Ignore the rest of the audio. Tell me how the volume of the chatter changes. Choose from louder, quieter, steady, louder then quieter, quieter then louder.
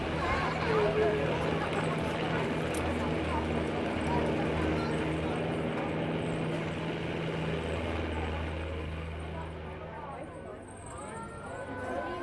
quieter.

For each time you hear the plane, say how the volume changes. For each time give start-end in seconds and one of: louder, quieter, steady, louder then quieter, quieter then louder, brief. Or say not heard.
0.0-12.1 quieter.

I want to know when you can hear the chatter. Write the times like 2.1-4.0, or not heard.
0.0-12.1.